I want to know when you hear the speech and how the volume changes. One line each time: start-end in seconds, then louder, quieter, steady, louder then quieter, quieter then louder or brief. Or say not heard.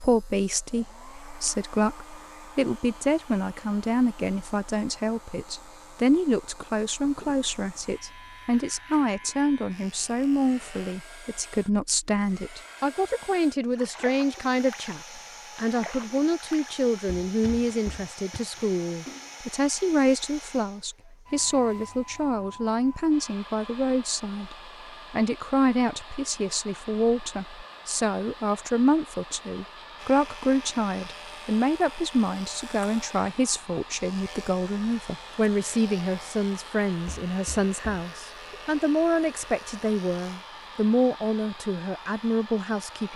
0.0-43.1 steady.